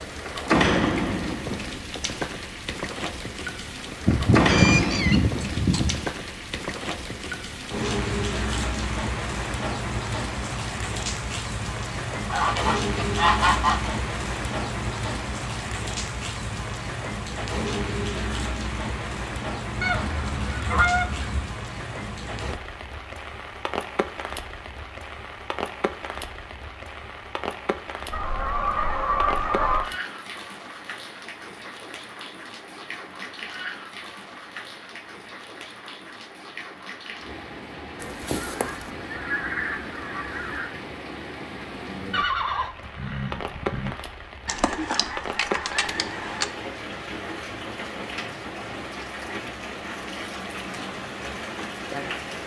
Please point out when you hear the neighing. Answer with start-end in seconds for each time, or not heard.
42.1-44.0.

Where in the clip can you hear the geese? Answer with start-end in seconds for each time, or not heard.
4.0-6.0, 12.3-13.9, 19.8-21.4, 28.1-29.9, 38.0-40.8, 44.5-46.5.